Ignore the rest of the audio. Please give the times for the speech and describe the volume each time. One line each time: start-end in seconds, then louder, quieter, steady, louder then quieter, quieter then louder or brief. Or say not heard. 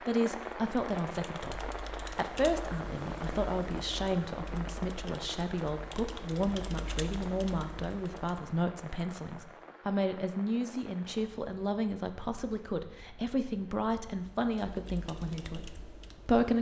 0.0-16.5 steady.